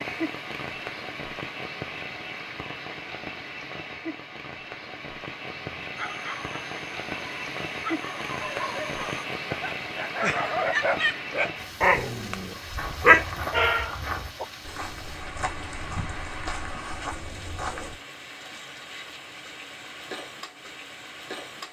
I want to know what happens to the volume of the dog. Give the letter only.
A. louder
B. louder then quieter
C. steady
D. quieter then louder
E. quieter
A.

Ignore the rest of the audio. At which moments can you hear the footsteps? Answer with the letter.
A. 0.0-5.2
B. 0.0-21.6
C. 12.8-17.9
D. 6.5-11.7
C.